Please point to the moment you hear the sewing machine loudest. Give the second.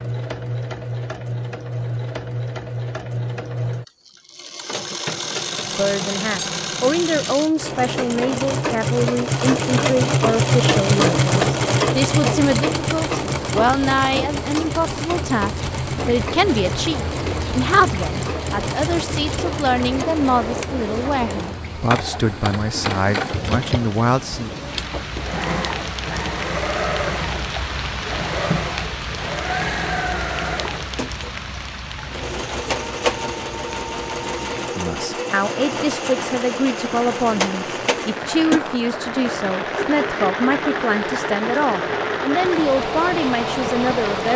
11 s.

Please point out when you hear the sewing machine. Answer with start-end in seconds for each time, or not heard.
0.0-44.3.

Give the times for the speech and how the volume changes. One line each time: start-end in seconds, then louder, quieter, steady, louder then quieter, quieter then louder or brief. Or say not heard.
5.8-24.5 steady
34.6-44.3 steady.